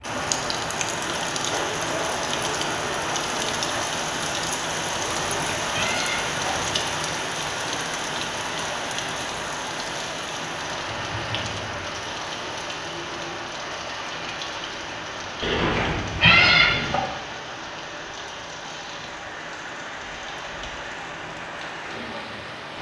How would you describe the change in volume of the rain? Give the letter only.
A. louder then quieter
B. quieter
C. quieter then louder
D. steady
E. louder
B.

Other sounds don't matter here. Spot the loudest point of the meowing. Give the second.
16 s.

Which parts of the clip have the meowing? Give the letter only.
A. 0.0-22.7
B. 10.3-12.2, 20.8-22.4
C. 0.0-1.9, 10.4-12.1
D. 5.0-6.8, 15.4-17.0
D.